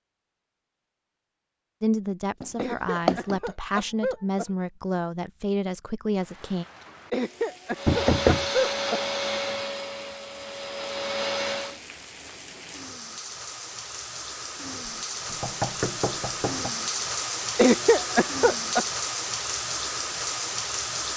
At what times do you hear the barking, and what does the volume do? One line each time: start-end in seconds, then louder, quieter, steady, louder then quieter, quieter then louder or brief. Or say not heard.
not heard.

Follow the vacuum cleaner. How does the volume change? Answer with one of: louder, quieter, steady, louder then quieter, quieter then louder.
quieter then louder.